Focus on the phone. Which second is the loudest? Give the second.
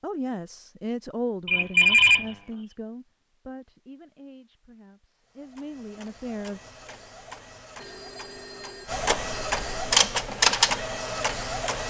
2 s.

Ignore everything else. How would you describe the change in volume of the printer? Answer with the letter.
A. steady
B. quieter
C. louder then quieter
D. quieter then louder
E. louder
E.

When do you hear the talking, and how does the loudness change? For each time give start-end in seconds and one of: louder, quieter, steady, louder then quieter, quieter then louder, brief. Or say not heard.
0.0-6.6 quieter then louder.